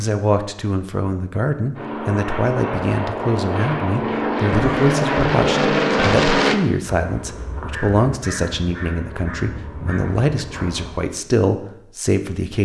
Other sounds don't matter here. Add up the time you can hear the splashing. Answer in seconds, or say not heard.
not heard.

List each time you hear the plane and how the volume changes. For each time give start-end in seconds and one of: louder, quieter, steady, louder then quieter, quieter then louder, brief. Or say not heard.
1.7-6.5 louder.